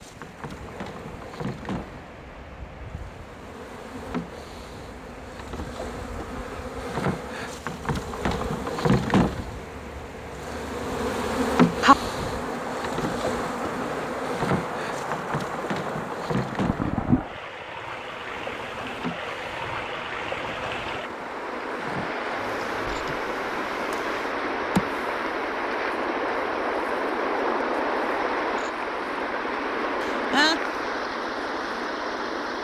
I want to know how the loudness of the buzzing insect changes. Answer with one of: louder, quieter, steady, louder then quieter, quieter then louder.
louder then quieter.